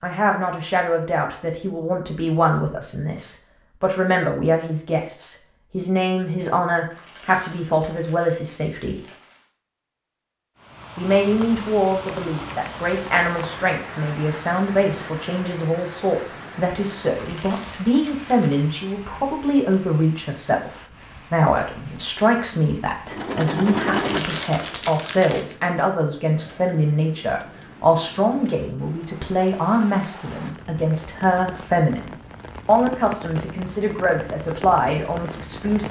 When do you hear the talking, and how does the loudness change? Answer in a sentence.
You can hear the talking from 0.0 to 9.0 s, at a steady volume; and from 10.9 to 35.8 s, at a steady volume.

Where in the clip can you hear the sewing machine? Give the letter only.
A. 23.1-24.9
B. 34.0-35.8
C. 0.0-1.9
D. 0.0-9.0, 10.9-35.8
A.